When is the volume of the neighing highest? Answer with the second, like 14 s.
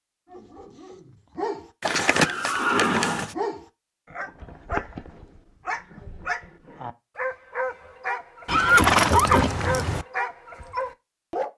9 s.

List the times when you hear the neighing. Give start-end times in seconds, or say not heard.
1.8-3.4, 8.4-10.1.